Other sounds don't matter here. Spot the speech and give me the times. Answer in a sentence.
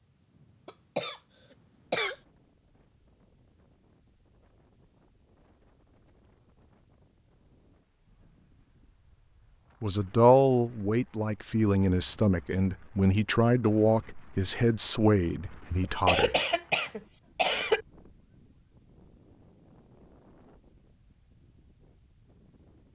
The speech can be heard from 9.8 to 16.4 s.